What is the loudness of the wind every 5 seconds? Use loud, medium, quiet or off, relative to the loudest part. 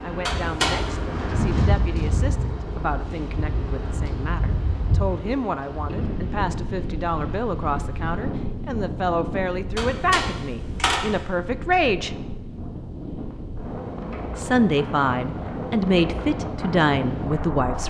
loud, loud, medium, loud.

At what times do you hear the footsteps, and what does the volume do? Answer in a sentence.
The footsteps can't be heard in this clip.